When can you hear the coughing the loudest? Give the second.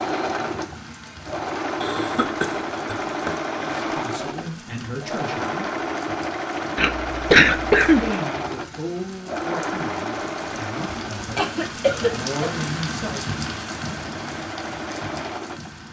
7 s.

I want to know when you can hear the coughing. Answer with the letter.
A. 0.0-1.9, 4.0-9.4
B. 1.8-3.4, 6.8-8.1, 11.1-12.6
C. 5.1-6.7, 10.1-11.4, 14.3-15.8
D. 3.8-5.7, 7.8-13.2
B.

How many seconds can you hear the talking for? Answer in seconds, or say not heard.
7 s.